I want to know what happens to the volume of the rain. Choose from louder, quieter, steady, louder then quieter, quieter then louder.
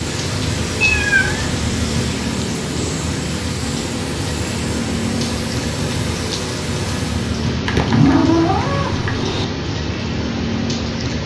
steady.